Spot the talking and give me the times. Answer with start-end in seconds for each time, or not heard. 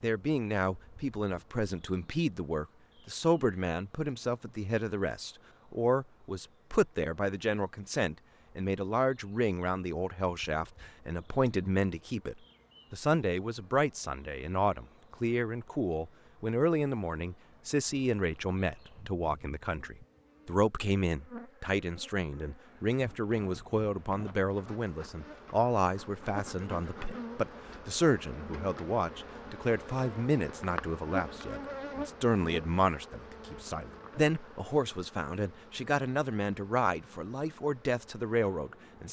0.0-39.0.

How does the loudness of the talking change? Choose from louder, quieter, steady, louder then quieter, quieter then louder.
steady.